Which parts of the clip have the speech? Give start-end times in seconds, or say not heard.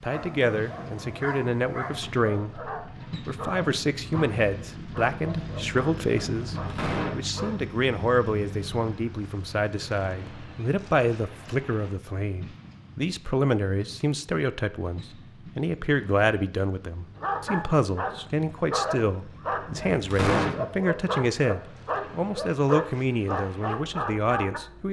0.0-24.8.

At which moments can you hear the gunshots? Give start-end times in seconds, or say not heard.
6.5-7.1, 19.6-20.6.